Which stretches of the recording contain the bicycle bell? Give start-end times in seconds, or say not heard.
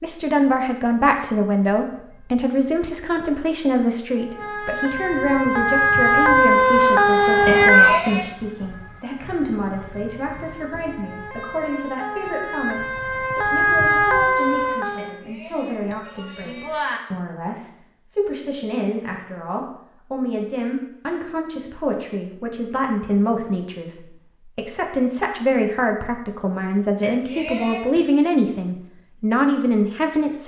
7.5-8.3, 14.9-17.0, 27.0-28.1.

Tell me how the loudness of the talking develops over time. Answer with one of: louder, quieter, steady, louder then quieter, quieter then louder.
quieter then louder.